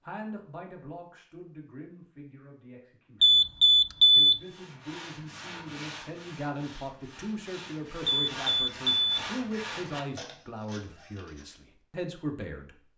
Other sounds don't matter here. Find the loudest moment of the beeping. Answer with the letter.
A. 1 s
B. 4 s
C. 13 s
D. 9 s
B.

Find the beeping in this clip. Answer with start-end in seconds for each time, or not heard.
3.2-4.3, 8.1-9.2.